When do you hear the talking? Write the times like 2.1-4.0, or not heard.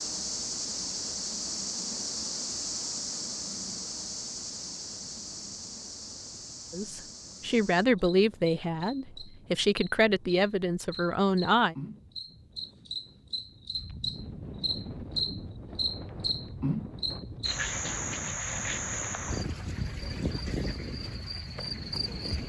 6.7-11.8.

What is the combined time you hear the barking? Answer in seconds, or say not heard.
not heard.